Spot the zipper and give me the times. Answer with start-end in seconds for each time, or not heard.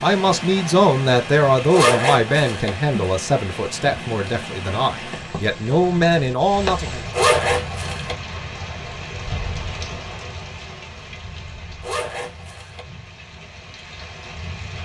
1.7-2.7, 7.1-8.2, 11.8-12.8.